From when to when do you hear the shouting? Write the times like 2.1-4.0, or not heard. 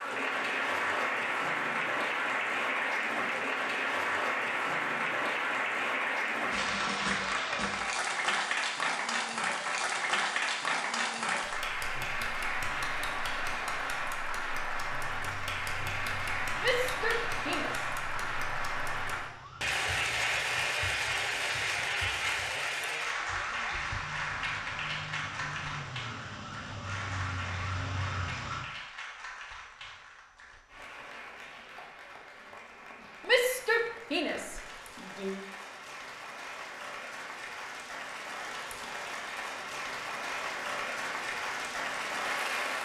16.6-17.9, 33.2-35.4.